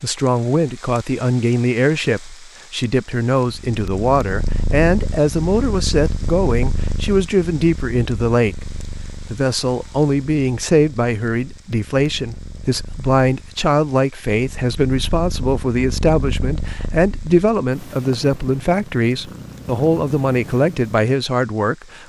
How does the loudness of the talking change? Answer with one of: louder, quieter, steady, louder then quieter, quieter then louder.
steady.